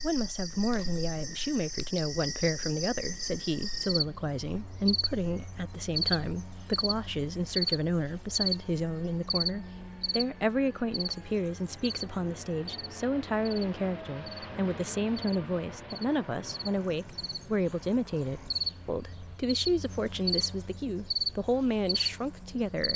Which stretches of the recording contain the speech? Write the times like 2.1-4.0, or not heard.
0.0-22.9.